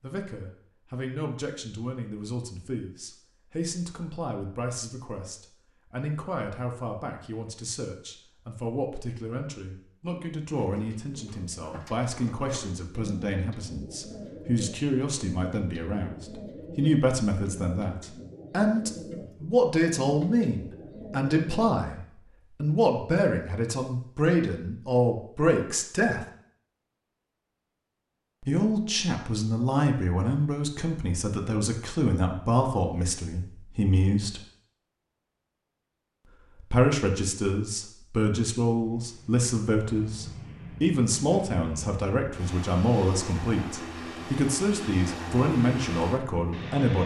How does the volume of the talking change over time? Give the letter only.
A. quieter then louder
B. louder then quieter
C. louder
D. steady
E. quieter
C.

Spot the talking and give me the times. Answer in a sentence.
The talking can be heard from 0.0 to 26.2 s, from 28.4 to 34.4 s and from 36.6 to 47.0 s.